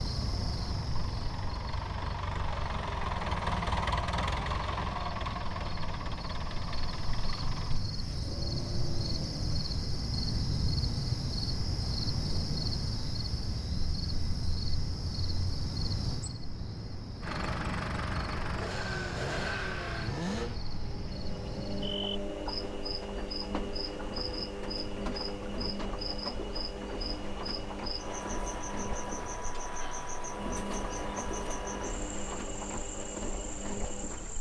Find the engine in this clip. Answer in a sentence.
The engine can be heard from 0.0 to 9.6 s and from 17.2 to 34.3 s.